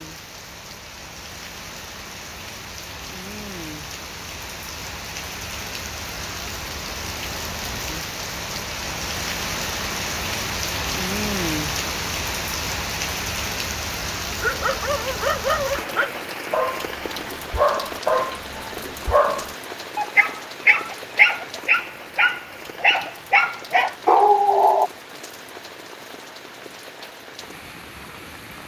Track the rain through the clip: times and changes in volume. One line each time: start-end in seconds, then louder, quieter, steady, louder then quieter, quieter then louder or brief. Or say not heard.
0.0-28.6 louder then quieter.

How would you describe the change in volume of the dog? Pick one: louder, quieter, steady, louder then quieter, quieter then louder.
louder.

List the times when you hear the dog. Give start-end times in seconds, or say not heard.
14.4-24.9.